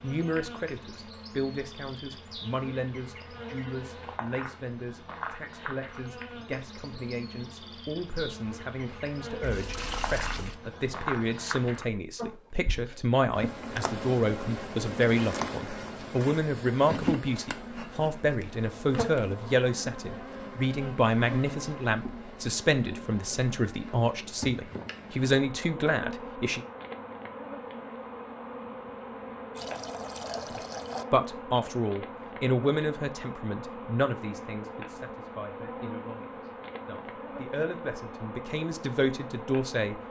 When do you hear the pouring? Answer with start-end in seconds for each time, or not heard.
9.4-10.6, 29.6-31.1.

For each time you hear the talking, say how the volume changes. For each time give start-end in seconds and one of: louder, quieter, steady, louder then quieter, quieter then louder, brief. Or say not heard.
0.0-26.6 louder
30.5-40.0 quieter then louder.